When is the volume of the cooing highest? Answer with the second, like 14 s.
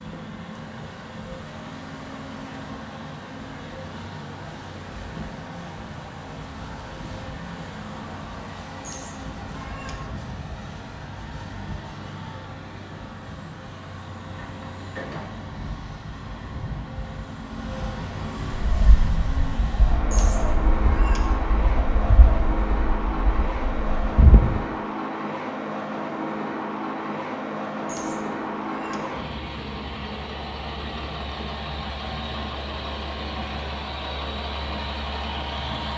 24 s.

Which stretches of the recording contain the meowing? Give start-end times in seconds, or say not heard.
8.8-10.2, 20.1-21.4, 27.9-29.2.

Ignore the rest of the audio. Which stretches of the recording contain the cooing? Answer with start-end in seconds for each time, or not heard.
18.6-24.6.